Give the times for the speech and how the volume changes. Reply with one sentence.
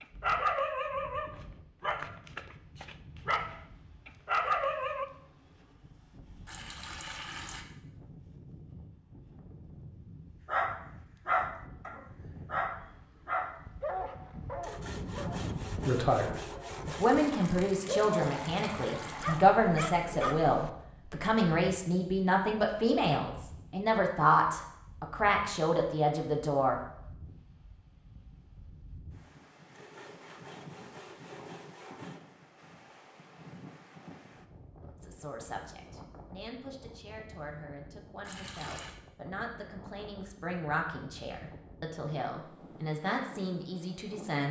You can hear the speech from 15.8 to 26.8 s, at a steady volume; and from 35.0 to 44.4 s, getting louder.